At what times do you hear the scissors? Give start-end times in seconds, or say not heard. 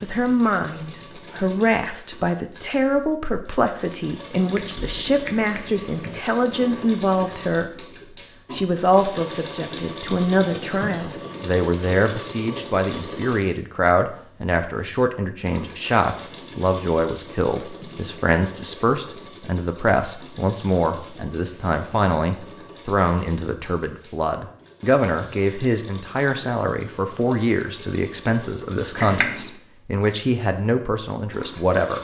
4.5-6.1, 28.9-29.6.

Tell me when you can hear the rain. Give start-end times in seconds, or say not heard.
not heard.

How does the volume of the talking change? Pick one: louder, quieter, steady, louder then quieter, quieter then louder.
steady.